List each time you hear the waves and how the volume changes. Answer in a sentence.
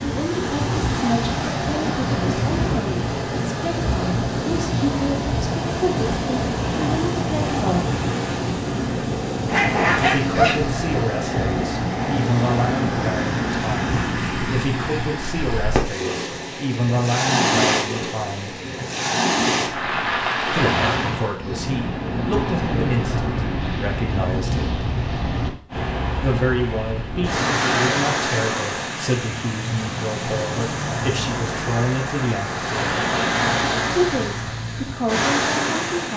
You can hear the waves from 0.0 to 36.1 s, at a steady volume.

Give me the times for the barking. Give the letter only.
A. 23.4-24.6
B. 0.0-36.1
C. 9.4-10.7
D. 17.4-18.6
C.